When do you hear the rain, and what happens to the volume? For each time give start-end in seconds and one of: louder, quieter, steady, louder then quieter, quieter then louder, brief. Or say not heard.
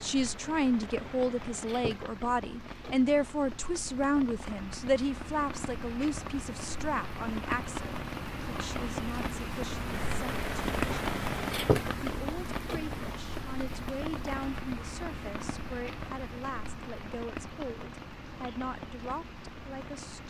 0.0-20.2 louder then quieter.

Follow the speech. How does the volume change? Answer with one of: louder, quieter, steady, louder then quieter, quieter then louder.
quieter.